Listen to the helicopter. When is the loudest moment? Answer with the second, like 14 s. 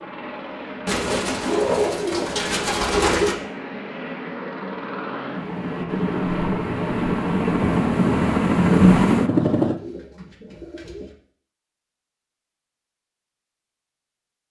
9 s.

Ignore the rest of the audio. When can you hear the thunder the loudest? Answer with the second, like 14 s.
9 s.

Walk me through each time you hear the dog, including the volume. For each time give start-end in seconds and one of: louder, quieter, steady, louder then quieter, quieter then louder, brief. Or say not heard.
not heard.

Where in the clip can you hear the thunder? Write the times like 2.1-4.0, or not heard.
5.8-9.1.